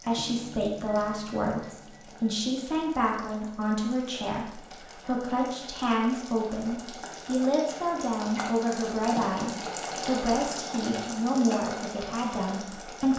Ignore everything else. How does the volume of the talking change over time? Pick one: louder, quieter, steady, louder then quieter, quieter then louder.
steady.